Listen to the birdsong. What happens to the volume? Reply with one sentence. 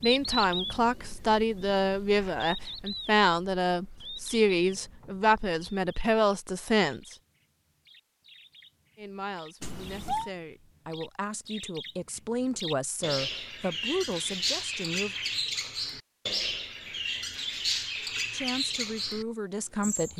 The volume of the birdsong goes down, then up.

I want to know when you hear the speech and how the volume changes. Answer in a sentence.
The speech can be heard from 0.0 to 7.2 s, at a steady volume; from 8.9 to 15.2 s, getting louder; and briefly from 18.3 to 20.1 s.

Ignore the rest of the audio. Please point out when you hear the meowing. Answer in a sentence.
The meowing can be heard from 9.6 to 10.3 s.